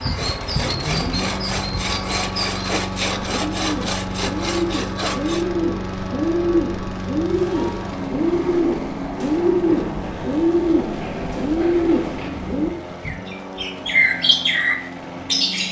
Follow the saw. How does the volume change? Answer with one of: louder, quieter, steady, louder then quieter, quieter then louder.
steady.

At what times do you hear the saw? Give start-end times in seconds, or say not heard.
0.0-5.5.